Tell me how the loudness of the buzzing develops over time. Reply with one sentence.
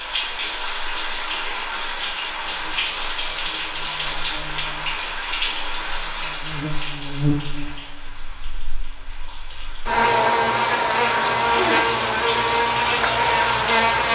The volume of the buzzing goes up.